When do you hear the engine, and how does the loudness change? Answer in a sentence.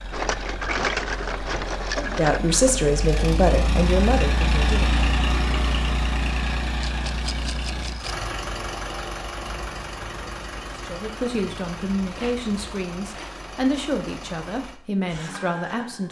The engine can be heard from 0.0 to 16.0 s, getting louder then quieter.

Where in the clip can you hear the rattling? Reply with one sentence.
The rattling can be heard from 0.1 to 2.8 s, from 6.8 to 8.2 s and from 12.1 to 13.3 s.